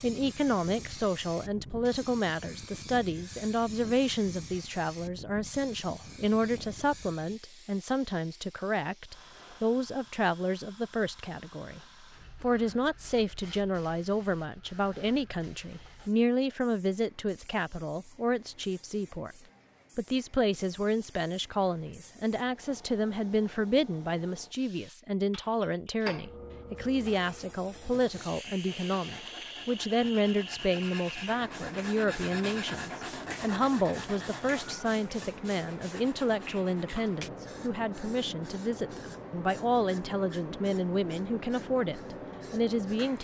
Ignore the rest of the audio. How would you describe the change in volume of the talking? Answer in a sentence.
The loudness of the talking stays about the same.